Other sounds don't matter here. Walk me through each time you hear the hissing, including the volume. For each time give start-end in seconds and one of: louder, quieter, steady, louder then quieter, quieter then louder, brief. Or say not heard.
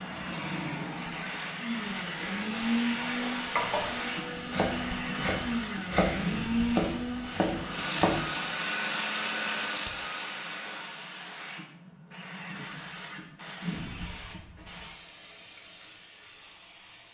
0.0-17.1 quieter.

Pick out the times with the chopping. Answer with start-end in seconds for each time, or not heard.
3.0-8.2.